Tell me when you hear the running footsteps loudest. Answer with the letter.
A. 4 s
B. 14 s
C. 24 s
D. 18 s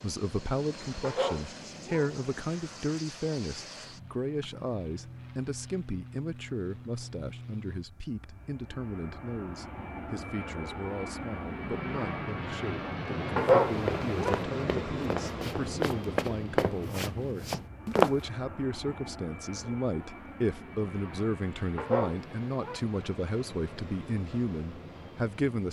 D.